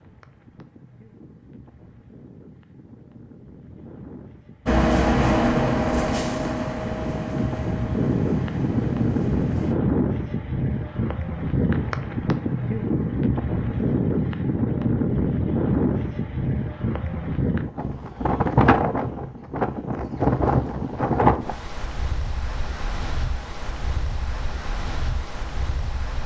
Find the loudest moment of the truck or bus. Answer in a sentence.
The volume of the truck or bus peaks at 5 seconds.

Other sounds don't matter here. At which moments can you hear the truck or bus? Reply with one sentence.
You can hear the truck or bus from 4.7 to 9.8 s.